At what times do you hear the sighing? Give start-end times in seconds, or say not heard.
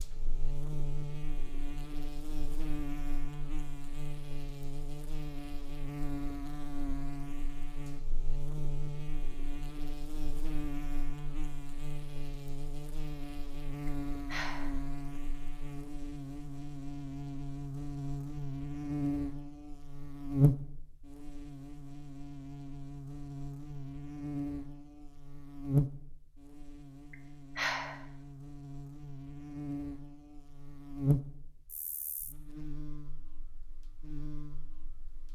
13.8-14.8, 27.1-28.0.